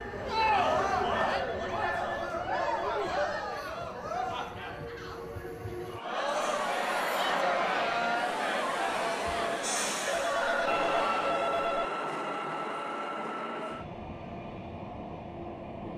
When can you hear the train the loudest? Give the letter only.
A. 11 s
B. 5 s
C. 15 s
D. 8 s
A.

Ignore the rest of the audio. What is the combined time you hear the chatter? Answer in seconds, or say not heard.
11 s.